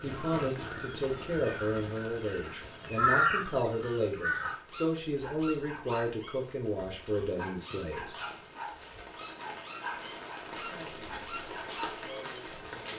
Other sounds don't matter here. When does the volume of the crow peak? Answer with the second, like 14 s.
3 s.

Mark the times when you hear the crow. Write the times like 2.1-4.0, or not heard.
0.0-4.6.